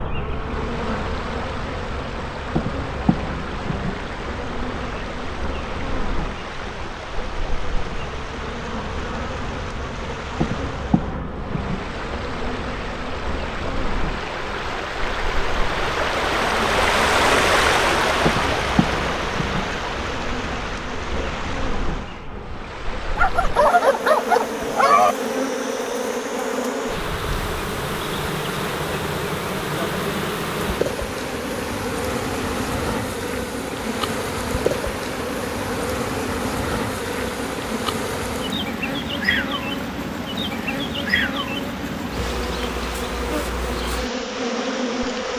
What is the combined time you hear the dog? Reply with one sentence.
The dog can be heard for 2 seconds in total.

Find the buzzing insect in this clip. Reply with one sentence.
You can hear the buzzing insect from 0.0 to 45.3 s.